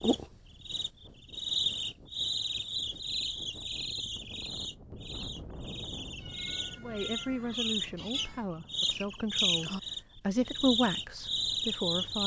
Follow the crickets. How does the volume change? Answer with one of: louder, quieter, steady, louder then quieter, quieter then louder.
quieter then louder.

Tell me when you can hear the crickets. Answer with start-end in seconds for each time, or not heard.
0.0-12.2.